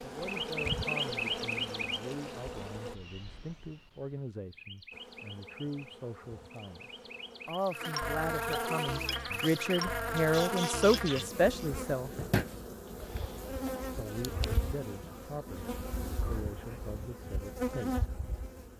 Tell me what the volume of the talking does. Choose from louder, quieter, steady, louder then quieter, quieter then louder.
louder then quieter.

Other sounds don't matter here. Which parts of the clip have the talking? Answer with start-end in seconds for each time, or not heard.
0.0-12.1, 13.9-18.1.